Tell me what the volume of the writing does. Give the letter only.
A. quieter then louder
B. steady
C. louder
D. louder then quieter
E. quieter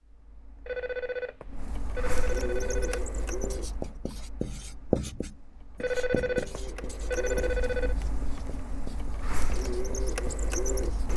D.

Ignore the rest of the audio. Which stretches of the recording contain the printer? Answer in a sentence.
You can hear the printer from 0.0 to 11.1 s.